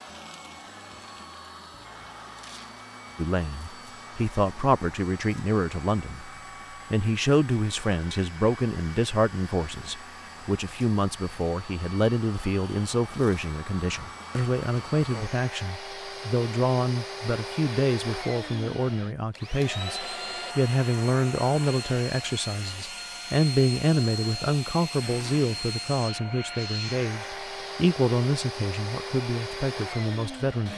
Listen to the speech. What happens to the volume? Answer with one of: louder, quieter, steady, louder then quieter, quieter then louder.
steady.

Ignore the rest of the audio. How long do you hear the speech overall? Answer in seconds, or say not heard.
27 s.